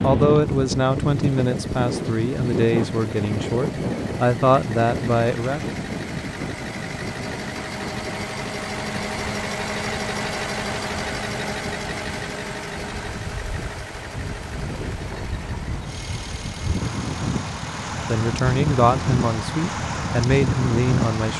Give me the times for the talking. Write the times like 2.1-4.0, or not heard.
0.0-5.8, 18.1-21.3.